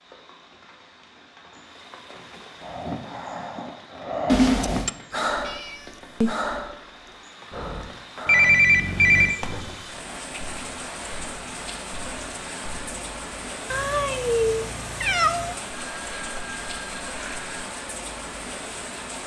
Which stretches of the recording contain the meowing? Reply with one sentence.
The meowing can be heard from 5.5 to 6.3 s and from 13.7 to 15.6 s.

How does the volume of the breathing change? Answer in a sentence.
The volume of the breathing goes up, then down.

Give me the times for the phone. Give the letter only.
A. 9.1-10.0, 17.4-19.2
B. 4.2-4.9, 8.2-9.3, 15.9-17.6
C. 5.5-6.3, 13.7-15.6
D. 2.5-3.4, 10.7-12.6
B.